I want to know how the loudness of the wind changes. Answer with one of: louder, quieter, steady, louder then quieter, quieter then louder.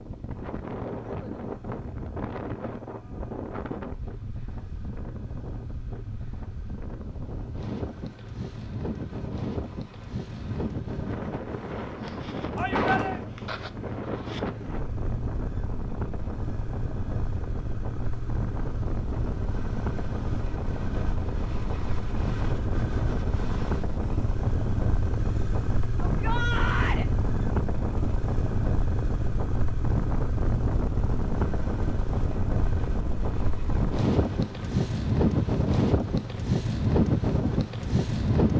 louder.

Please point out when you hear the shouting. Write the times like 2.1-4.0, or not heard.
12.6-13.2, 26.0-27.1.